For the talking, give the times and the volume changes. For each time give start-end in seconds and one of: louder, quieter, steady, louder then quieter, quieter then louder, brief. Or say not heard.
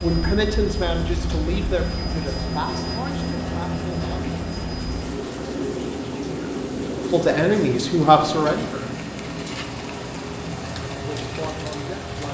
0.0-4.3 quieter
7.1-8.9 brief
11.0-12.2 brief.